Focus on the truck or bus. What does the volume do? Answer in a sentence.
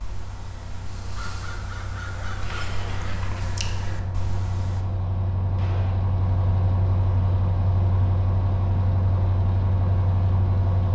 The volume of the truck or bus goes up.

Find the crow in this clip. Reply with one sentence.
You can hear the crow from 0.0 to 4.8 s.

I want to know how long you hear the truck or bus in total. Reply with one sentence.
The truck or bus can be heard for 11 seconds in total.